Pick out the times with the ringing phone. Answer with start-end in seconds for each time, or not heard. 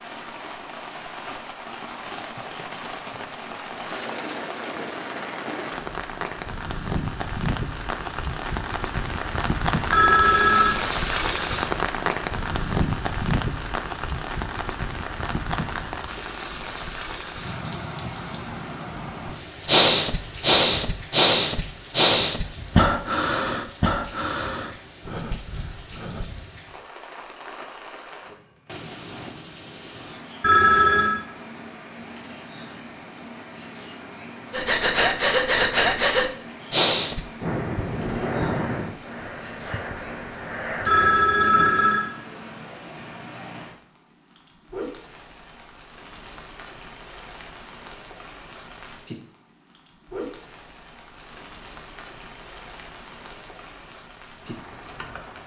9.9-10.8, 30.4-31.1, 40.9-42.0.